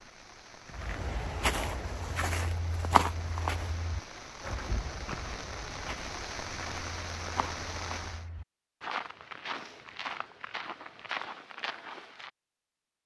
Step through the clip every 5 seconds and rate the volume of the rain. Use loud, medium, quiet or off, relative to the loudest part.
medium, loud, off.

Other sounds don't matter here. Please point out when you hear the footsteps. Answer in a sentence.
You can hear the footsteps from 0.7 to 12.3 s.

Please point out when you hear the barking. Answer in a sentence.
You can't hear the barking here.